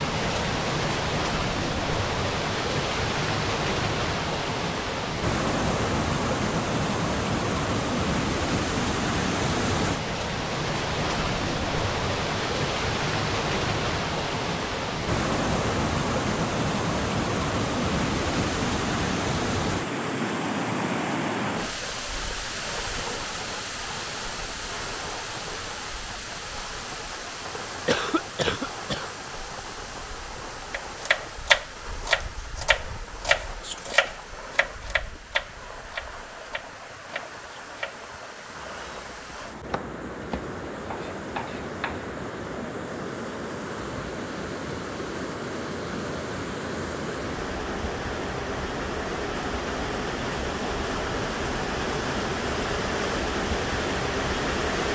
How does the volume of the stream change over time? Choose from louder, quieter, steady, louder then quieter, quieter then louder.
quieter then louder.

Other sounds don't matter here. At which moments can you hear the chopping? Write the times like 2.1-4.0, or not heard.
30.7-42.1.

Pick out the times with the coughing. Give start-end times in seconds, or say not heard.
27.9-29.1.